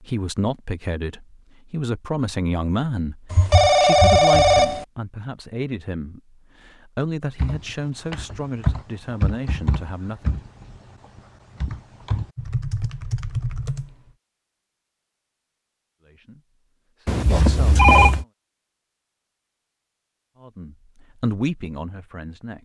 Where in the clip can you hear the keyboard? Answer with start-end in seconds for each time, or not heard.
7.3-13.9.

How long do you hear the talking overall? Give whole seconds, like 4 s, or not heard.
15 s.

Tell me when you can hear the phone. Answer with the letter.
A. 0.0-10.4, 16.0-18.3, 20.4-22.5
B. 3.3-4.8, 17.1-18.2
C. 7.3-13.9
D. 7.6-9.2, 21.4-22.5
B.